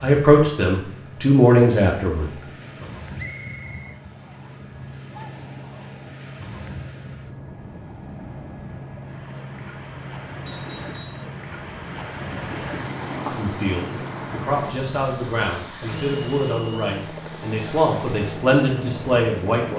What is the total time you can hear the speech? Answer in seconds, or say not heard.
9 s.